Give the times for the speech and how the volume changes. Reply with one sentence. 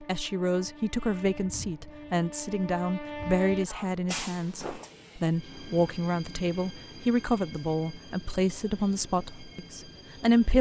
The speech can be heard from 0.0 to 10.5 s, at a steady volume.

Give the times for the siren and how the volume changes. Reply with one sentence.
The siren can't be heard in this clip.